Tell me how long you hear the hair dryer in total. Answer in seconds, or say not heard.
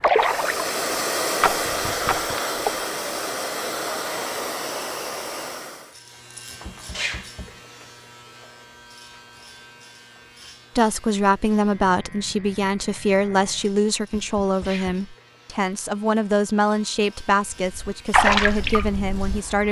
6 s.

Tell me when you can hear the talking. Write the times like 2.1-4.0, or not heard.
10.8-19.6.